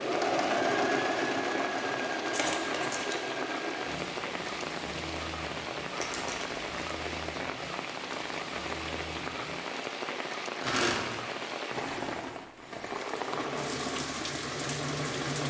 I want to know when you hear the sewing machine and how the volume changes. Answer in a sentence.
The sewing machine can be heard from 0.0 to 9.8 s, getting quieter; and briefly from 13.1 to 15.4 s.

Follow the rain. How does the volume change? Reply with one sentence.
The loudness of the rain stays about the same.